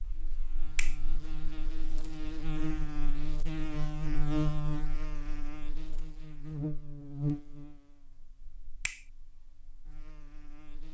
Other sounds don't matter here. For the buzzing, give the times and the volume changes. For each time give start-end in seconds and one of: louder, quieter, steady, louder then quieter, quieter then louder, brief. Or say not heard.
0.0-10.8 louder then quieter.